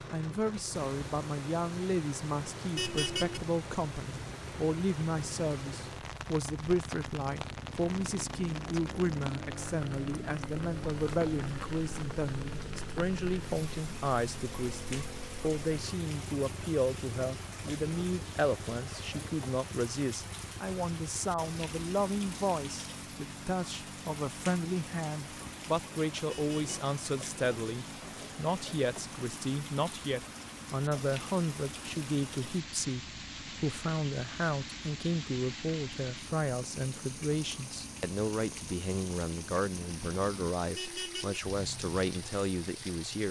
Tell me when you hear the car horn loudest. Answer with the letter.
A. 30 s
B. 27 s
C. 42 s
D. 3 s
D.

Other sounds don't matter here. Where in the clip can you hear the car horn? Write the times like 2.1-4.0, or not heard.
2.8-3.4, 26.2-26.8, 40.8-41.4.